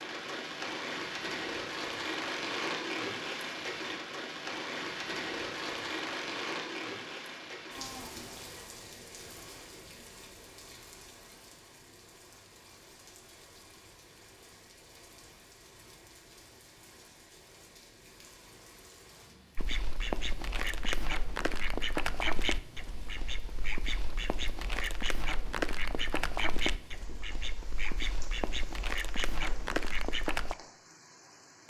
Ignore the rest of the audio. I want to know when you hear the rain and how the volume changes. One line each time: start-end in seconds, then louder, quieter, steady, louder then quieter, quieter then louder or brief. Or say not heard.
0.0-31.6 quieter.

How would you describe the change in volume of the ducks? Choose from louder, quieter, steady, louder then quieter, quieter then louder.
steady.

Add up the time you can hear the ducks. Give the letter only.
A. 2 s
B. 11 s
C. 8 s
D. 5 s
B.